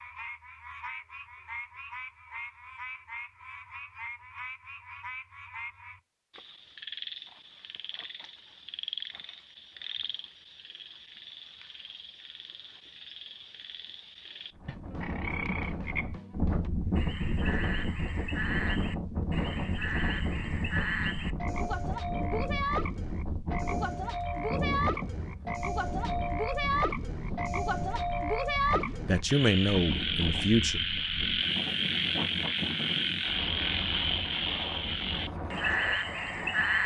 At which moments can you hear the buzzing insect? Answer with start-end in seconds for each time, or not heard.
not heard.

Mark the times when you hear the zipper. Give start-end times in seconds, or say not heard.
not heard.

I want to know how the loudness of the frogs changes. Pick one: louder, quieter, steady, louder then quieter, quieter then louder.
louder.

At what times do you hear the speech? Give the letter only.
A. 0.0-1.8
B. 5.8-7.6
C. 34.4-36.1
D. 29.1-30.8
D.